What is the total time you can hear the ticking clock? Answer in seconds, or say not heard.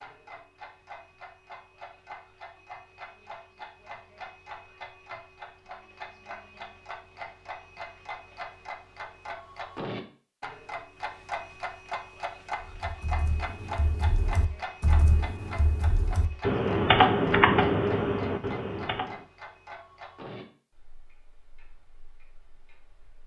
23 s.